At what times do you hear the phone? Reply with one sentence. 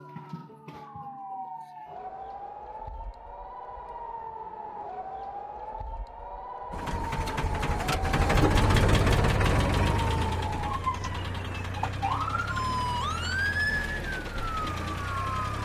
You can't hear the phone here.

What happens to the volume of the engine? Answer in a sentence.
The loudness of the engine goes down.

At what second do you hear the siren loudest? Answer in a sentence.
The loudest moment of the siren is at 13 seconds.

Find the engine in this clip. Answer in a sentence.
The engine can be heard from 6.7 to 15.5 s.